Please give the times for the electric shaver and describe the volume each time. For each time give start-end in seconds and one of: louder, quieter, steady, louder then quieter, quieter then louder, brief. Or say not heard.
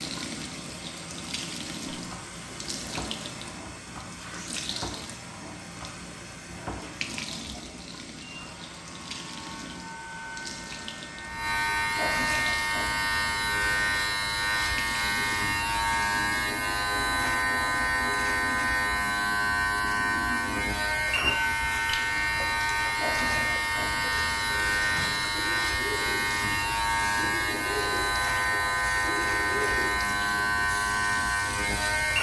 1.9-32.1 louder.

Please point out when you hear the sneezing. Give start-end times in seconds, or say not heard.
not heard.